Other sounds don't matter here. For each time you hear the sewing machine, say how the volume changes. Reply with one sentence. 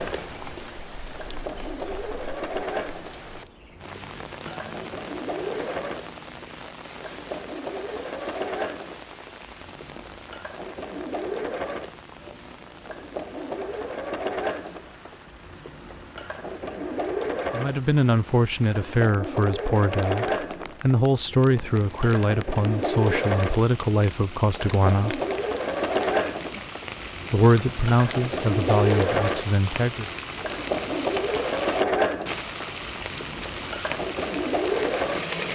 You can hear the sewing machine from 0.0 to 35.4 s, getting louder.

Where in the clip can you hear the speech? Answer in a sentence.
You can hear the speech from 17.5 to 25.2 s and from 27.3 to 30.1 s.